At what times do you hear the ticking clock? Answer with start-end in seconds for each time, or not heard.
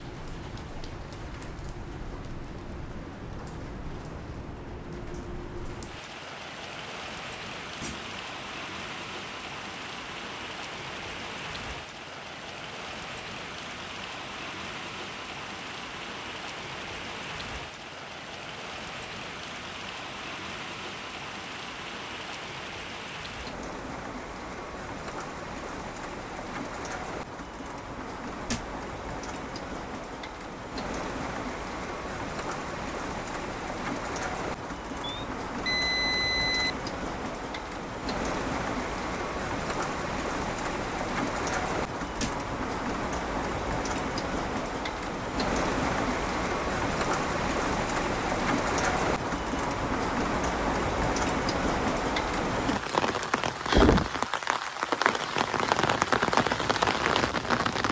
not heard.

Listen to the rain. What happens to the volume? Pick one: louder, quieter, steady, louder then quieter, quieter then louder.
louder.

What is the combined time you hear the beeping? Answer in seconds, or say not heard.
2 s.